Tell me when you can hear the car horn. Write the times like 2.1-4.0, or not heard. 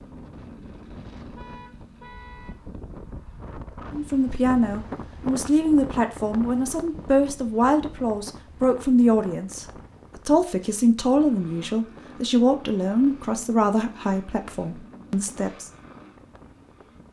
1.4-2.5.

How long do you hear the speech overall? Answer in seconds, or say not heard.
12 s.